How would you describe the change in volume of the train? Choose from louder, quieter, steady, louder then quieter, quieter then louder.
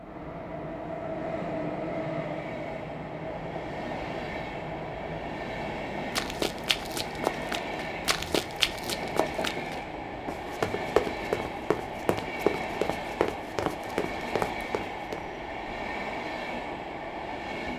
steady.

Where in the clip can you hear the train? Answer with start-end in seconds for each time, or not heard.
0.0-17.7.